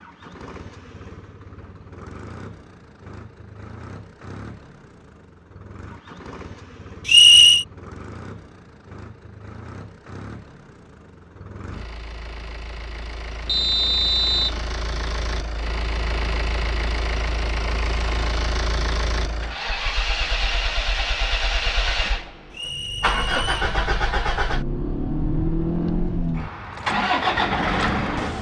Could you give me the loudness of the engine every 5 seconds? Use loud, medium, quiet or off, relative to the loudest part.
quiet, quiet, quiet, medium, loud, loud.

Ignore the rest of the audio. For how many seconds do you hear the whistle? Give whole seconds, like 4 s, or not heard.
3 s.